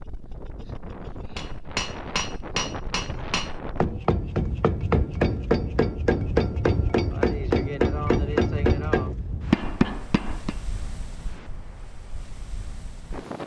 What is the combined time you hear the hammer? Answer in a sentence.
You can hear the hammer for 9 seconds altogether.